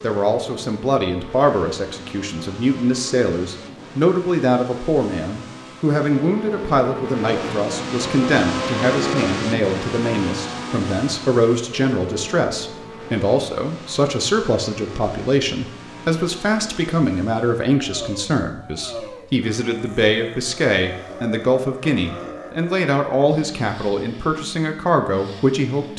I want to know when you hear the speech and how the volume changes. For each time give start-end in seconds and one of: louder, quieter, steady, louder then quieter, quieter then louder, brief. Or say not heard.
0.0-25.9 steady.